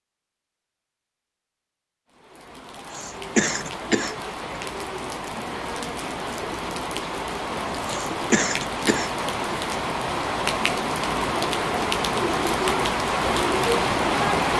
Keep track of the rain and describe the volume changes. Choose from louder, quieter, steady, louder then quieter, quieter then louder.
louder.